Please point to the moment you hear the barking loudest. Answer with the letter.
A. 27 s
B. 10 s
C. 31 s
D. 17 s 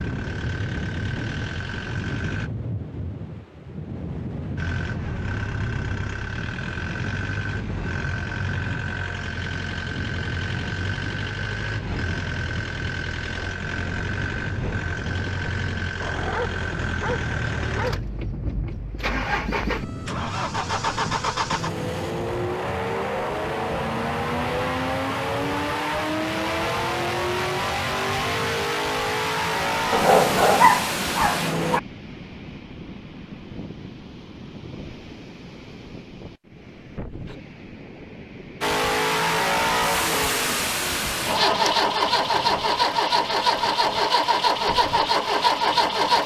C.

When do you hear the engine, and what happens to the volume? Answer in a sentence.
The engine can be heard briefly from 0.0 to 2.5 s; from 4.5 to 31.8 s, getting louder; and from 38.6 to 46.2 s, at a steady volume.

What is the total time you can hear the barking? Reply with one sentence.
You can hear the barking for 4 seconds altogether.